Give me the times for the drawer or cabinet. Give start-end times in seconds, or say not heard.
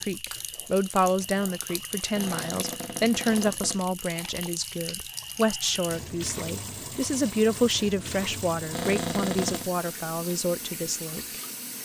2.1-3.9, 8.7-9.7.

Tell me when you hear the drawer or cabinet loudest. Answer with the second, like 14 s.
9 s.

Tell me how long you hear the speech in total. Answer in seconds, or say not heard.
12 s.